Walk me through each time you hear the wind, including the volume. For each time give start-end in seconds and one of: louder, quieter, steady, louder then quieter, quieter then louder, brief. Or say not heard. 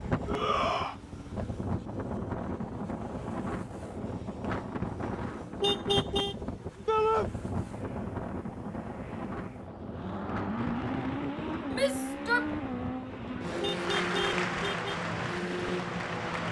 0.0-16.4 quieter.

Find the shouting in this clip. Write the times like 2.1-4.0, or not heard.
0.2-0.9, 6.8-7.3, 11.7-12.5.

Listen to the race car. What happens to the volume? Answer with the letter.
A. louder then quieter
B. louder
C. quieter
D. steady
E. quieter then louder
B.